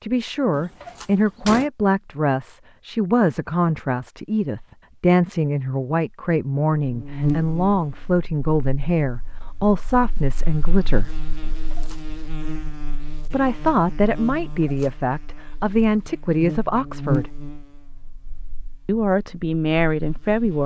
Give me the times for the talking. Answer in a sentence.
You can hear the talking from 0.0 to 11.1 s, from 13.3 to 17.3 s and from 18.9 to 20.6 s.